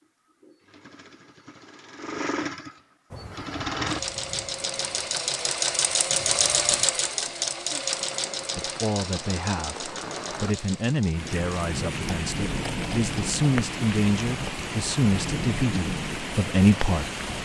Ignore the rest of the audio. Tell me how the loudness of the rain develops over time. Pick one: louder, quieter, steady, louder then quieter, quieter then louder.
louder.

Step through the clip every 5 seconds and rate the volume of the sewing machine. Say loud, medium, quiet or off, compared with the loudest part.
medium, loud, quiet, quiet.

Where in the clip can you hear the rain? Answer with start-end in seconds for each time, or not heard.
3.1-17.4.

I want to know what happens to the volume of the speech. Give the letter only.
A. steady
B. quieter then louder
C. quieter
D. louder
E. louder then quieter
D.